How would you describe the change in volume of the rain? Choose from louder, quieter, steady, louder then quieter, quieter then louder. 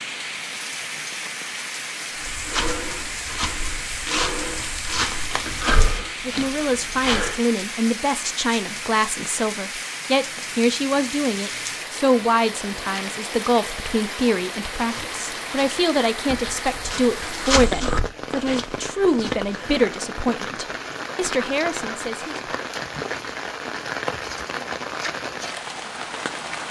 steady.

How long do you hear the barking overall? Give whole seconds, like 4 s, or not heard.
not heard.